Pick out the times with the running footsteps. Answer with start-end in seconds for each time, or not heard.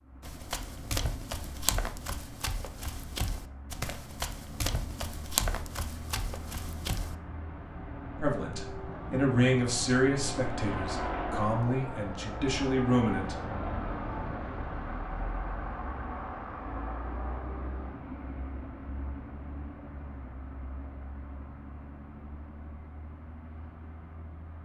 0.2-7.2.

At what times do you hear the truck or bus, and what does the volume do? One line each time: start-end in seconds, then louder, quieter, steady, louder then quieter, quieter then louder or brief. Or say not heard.
0.0-24.5 louder then quieter.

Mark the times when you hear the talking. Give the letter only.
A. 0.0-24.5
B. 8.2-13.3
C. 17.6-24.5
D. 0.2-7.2
B.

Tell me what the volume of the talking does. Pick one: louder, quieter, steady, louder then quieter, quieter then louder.
quieter then louder.